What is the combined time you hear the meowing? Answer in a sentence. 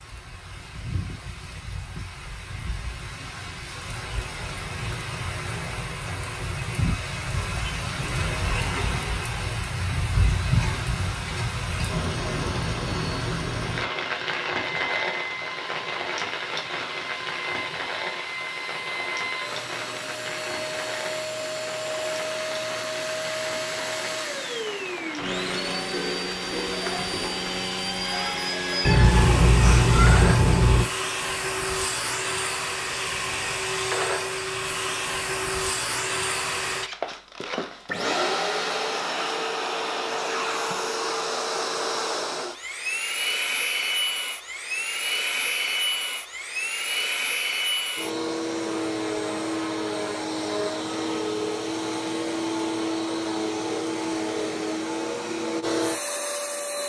You can hear the meowing for 2 seconds altogether.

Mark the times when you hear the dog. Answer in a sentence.
You can't hear the dog here.